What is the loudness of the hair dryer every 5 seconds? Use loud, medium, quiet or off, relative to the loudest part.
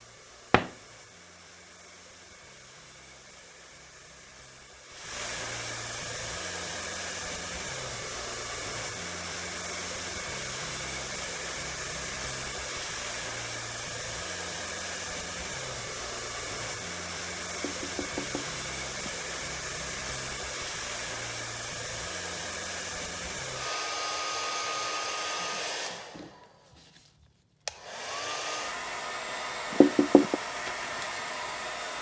quiet, loud, loud, loud, loud, loud, loud.